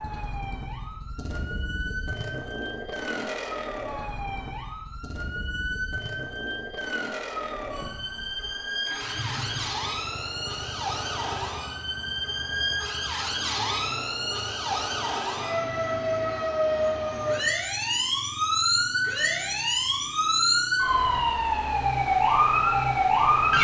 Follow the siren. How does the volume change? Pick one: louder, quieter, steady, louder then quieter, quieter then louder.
louder.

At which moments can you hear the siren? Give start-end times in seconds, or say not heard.
0.0-23.5.